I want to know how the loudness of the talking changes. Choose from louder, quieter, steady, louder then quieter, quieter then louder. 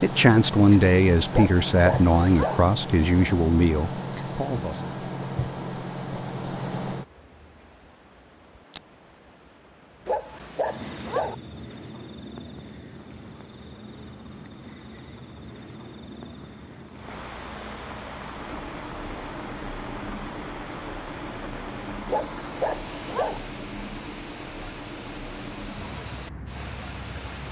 quieter.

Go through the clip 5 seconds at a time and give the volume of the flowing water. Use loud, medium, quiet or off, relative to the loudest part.
off, quiet, quiet, loud, loud, loud.